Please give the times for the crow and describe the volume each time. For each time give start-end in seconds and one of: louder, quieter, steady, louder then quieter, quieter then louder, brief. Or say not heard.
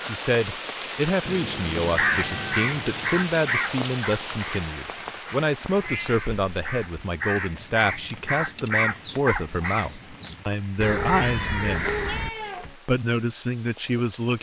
1.9-12.3 quieter then louder.